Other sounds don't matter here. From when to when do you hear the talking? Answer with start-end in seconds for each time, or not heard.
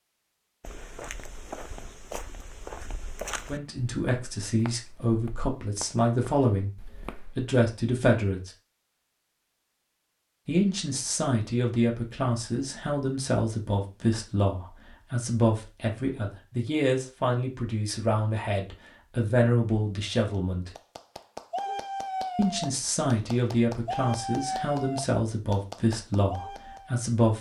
3.5-6.8, 7.3-8.5, 10.4-20.7, 22.4-27.3.